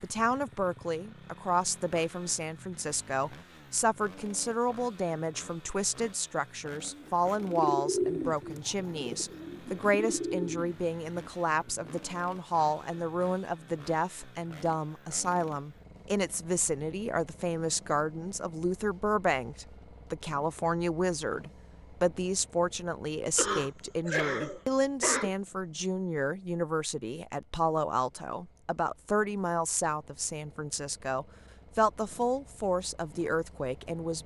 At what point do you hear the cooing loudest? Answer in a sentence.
The loudest moment of the cooing is at 8 seconds.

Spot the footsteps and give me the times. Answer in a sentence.
The footsteps can't be heard in this clip.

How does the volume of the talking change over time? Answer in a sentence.
The loudness of the talking stays about the same.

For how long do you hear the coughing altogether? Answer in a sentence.
The coughing can be heard for 2 seconds in total.